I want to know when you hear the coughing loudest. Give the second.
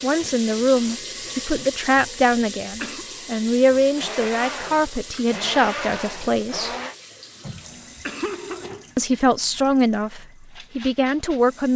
8 s.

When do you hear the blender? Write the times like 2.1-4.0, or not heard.
4.0-7.0.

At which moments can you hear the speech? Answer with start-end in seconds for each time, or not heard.
0.0-6.8, 8.9-11.7.